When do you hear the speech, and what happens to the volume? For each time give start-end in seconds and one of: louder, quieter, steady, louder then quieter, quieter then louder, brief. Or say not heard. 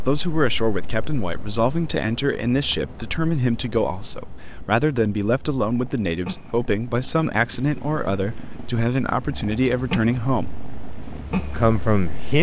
0.0-10.6 steady
11.5-12.3 brief.